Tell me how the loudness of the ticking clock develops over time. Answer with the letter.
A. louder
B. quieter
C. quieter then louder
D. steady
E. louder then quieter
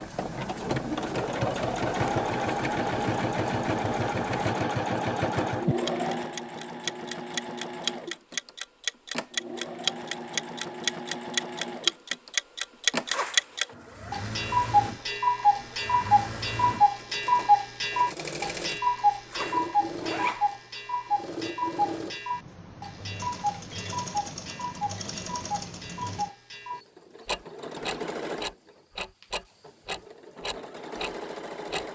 E.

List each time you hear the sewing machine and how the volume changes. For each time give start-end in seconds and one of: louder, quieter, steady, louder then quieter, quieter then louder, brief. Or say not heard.
0.0-31.9 quieter.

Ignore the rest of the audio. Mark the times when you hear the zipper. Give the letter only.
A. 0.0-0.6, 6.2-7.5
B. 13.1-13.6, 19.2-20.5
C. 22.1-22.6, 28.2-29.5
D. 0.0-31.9
B.